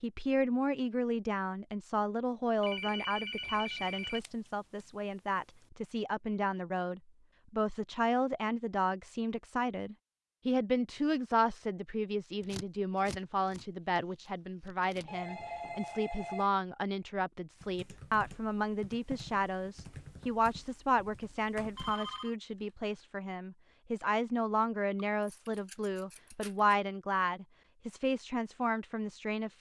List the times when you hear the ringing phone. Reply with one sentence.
The ringing phone can be heard from 2.6 to 4.2 s, from 15.1 to 16.5 s and from 21.8 to 22.4 s.